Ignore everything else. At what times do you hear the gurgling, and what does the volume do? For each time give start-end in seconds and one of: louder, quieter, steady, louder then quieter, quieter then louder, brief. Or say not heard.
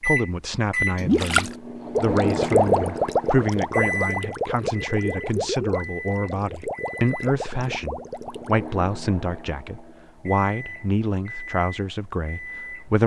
1.0-8.7 quieter.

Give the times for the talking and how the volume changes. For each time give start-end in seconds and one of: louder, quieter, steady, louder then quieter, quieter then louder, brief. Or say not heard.
0.0-13.0 steady.